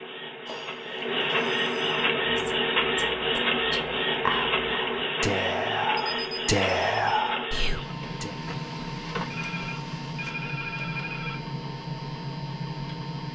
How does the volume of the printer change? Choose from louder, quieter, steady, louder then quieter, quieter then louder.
quieter.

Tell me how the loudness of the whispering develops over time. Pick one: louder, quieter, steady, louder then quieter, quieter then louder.
louder.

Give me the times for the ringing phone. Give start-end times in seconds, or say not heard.
0.5-2.1, 6.0-7.1, 9.3-11.4.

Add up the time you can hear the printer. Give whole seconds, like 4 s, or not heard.
13 s.